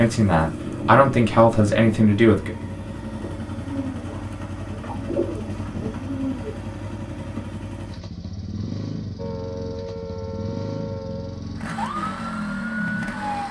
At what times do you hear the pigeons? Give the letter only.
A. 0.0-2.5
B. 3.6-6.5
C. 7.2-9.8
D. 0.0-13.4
B.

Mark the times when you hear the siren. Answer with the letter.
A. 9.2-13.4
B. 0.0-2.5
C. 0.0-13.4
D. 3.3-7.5
A.